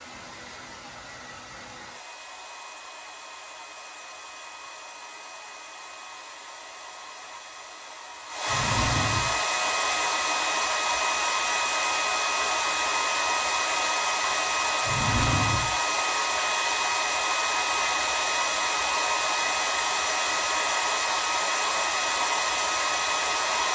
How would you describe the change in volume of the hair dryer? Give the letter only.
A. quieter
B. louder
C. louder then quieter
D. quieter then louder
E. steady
B.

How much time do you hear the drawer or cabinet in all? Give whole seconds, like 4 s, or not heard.
2 s.